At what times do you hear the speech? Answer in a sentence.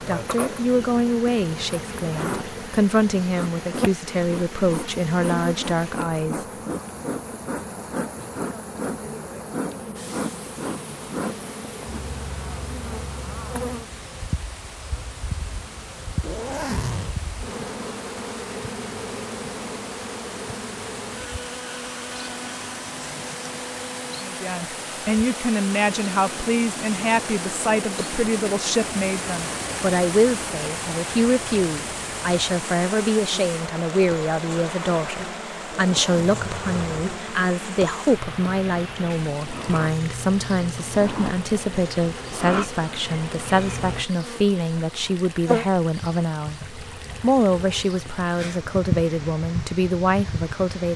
You can hear the speech from 0.1 to 6.5 s, from 24.2 to 46.6 s and from 47.2 to 50.9 s.